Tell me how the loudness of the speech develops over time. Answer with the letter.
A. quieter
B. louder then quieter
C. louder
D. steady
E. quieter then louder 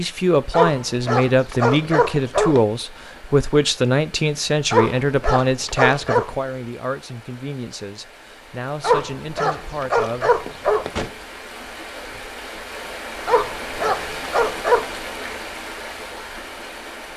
A.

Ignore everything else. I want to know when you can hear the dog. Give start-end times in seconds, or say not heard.
0.5-2.6, 4.7-6.3, 8.8-11.1, 13.2-14.8.